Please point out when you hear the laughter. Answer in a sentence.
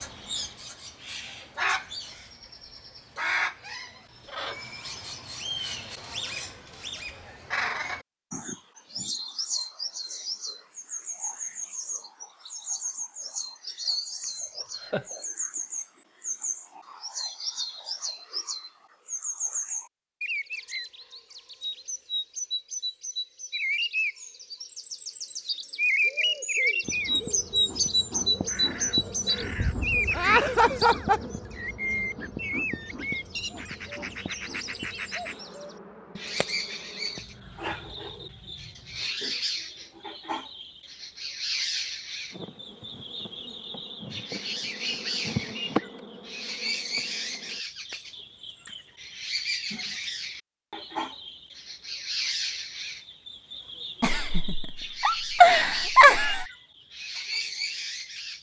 You can hear the laughter from 14.8 to 15.2 s, from 30.1 to 31.2 s and from 54.0 to 56.5 s.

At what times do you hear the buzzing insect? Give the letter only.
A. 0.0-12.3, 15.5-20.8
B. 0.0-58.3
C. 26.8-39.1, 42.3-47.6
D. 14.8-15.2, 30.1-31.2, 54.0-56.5
C.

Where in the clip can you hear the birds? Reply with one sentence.
You can hear the birds from 0.0 to 58.3 s.